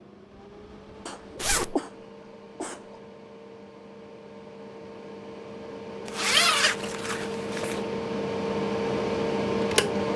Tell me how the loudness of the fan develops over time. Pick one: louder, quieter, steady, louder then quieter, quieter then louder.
louder.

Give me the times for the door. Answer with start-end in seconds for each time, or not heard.
not heard.